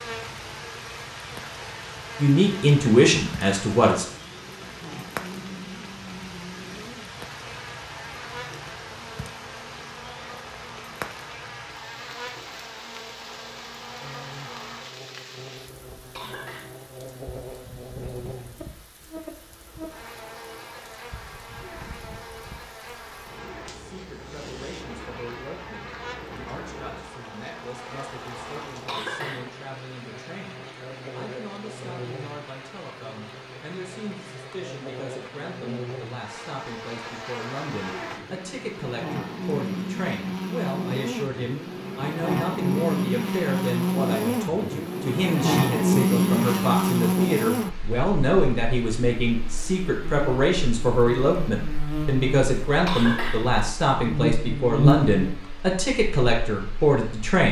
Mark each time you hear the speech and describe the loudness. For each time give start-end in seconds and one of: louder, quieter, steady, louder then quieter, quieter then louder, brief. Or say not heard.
2.2-4.0 brief
23.7-57.4 louder.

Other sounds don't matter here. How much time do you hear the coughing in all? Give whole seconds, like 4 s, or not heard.
2 s.